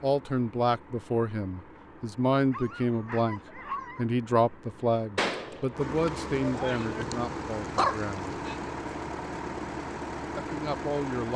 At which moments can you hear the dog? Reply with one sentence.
The dog can be heard from 2.5 to 4.0 s and from 6.8 to 8.6 s.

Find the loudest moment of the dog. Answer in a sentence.
The volume of the dog peaks at 8 seconds.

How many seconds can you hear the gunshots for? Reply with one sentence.
The gunshots can be heard for 2 seconds in total.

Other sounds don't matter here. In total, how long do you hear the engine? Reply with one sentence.
You can hear the engine for 11 seconds altogether.